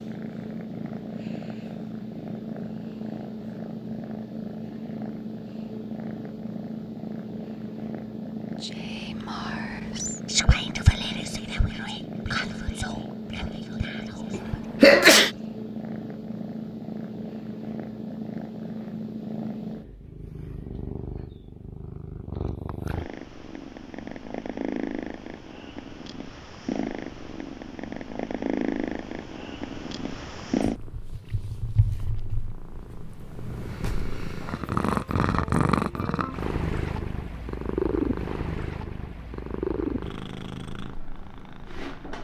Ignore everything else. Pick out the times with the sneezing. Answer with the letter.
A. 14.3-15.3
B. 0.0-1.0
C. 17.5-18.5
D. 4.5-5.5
A.